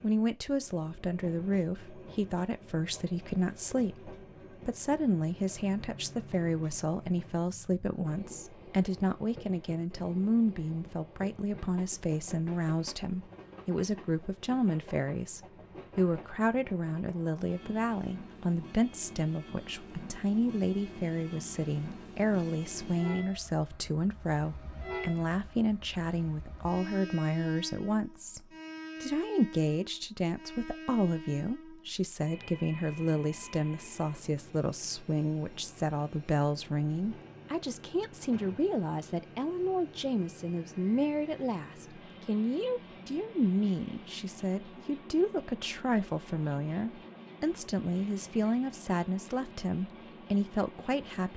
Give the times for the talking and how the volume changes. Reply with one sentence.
The talking can be heard from 0.0 to 51.3 s, at a steady volume.